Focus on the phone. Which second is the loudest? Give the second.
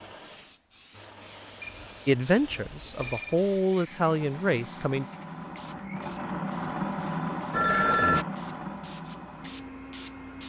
8 s.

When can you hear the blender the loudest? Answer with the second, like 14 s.
7 s.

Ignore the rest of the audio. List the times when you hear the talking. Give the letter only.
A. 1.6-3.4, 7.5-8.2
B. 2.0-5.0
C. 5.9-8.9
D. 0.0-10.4
B.